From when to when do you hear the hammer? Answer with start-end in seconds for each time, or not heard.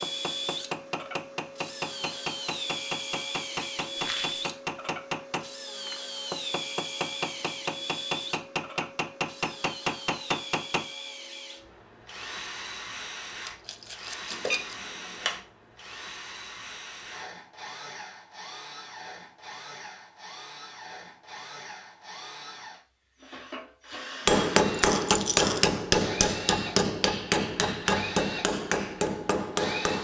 0.0-10.8, 24.2-29.9.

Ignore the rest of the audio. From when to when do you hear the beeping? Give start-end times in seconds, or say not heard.
14.3-15.4.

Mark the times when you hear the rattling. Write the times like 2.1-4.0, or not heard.
4.0-4.5, 13.4-14.8, 24.8-25.6.